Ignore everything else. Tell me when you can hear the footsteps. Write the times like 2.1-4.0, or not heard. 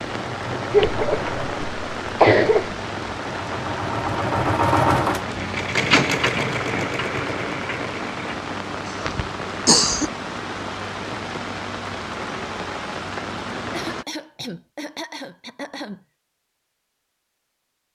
not heard.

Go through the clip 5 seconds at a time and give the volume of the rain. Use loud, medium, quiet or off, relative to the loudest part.
loud, loud, loud, off.